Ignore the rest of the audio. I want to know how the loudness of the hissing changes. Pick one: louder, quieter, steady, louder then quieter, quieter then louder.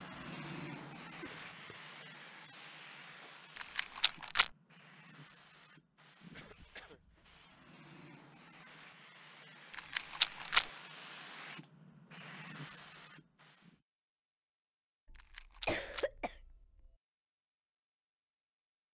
quieter then louder.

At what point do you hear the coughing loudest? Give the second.
16 s.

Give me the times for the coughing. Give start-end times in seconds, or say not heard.
1.2-1.8, 6.3-7.0, 15.1-16.9.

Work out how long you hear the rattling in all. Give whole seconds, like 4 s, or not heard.
3 s.